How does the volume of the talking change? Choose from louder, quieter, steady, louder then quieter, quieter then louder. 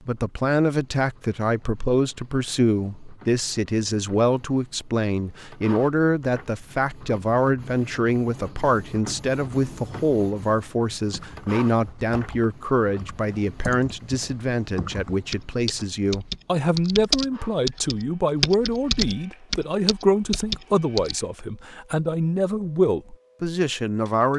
steady.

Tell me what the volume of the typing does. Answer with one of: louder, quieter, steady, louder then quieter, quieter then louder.
louder.